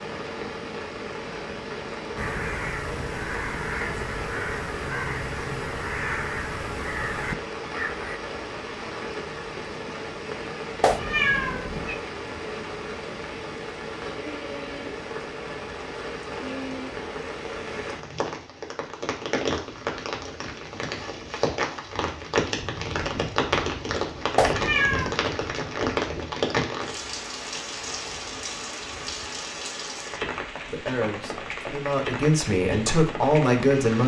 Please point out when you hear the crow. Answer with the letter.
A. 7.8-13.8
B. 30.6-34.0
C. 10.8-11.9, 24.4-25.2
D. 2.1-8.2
D.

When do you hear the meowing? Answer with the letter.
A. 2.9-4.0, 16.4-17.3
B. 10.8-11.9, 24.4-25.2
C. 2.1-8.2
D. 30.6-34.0
B.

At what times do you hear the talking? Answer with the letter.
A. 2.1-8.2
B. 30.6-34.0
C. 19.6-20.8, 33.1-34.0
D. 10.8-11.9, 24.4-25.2
B.